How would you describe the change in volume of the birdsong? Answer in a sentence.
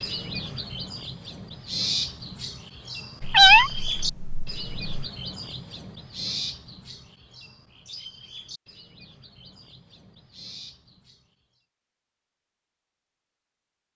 The loudness of the birdsong goes down.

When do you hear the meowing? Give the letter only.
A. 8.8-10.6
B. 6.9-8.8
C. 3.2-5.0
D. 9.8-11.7
C.